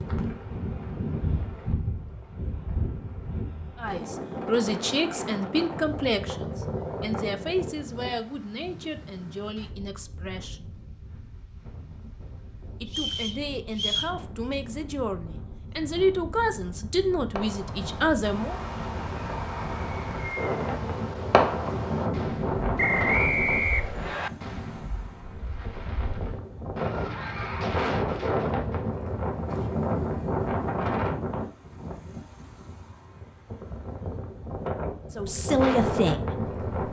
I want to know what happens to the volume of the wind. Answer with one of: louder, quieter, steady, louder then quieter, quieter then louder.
quieter then louder.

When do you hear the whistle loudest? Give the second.
23 s.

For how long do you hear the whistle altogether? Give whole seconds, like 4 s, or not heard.
3 s.